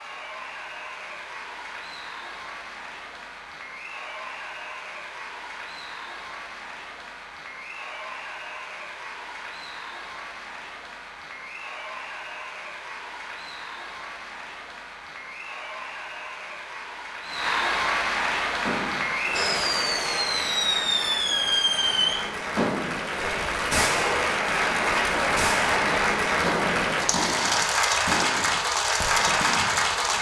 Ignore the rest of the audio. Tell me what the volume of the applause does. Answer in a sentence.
The volume of the applause goes up.